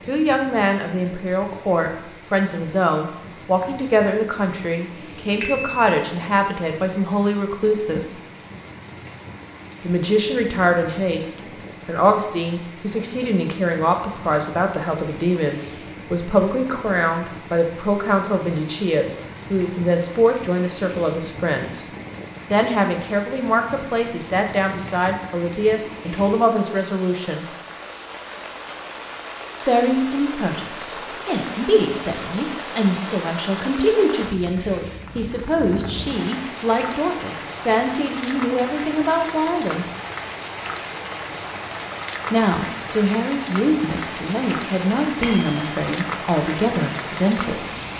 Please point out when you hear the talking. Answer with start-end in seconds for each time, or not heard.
0.1-8.2, 9.8-21.9, 22.5-27.4, 29.6-39.9, 42.3-47.7.